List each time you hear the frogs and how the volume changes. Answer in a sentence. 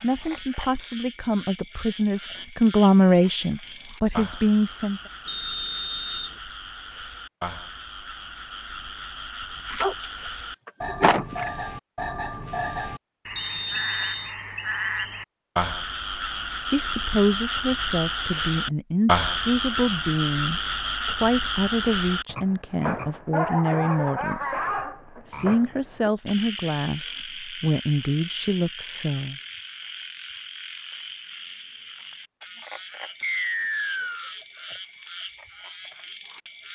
The frogs can be heard from 0.0 to 36.6 s, getting louder then quieter.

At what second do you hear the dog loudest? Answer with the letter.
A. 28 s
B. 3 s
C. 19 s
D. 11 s
D.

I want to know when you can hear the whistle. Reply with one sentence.
You can hear the whistle from 5.2 to 6.3 s, from 13.3 to 14.3 s and from 33.2 to 34.4 s.